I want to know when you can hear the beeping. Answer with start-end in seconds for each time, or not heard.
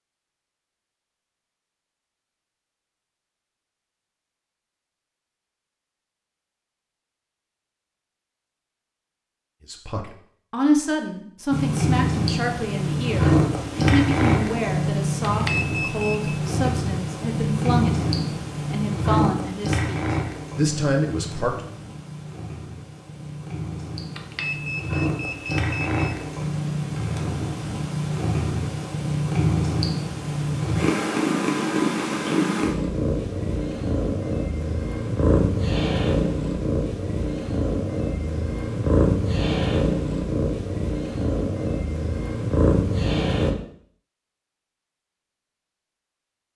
15.2-16.4, 24.1-26.1.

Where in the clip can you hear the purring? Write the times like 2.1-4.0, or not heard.
11.5-43.5.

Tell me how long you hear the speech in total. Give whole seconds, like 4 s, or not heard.
12 s.